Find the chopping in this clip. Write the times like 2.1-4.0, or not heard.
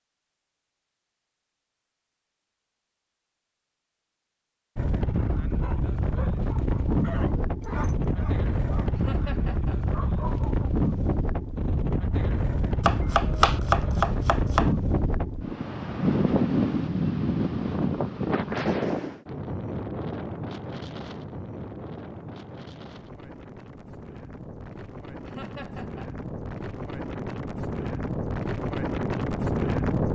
12.8-14.7.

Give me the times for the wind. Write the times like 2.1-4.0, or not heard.
4.8-30.0.